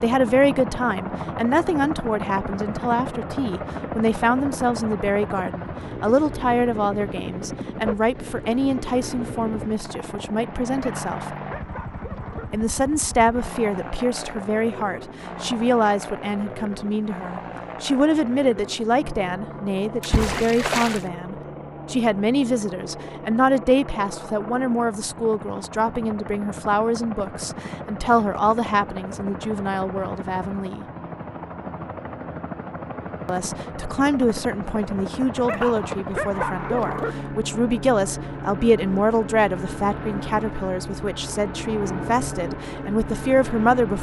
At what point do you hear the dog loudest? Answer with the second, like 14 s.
36 s.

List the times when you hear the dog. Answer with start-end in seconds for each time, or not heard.
10.8-12.6, 35.5-37.2.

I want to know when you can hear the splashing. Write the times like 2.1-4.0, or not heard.
20.0-21.1.